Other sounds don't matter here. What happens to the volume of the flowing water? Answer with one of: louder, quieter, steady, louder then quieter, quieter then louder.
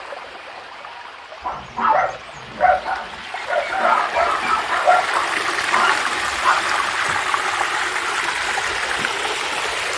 louder.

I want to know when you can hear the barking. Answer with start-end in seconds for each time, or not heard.
1.4-6.7.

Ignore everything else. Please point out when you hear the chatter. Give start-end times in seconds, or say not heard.
not heard.